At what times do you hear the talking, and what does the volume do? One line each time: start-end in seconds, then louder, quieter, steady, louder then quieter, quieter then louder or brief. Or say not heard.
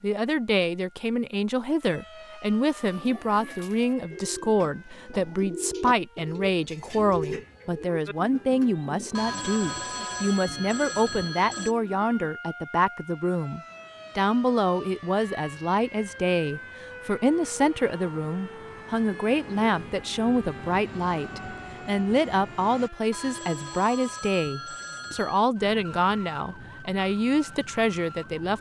0.0-28.5 steady.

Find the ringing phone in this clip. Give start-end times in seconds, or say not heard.
9.2-11.8, 23.1-25.4.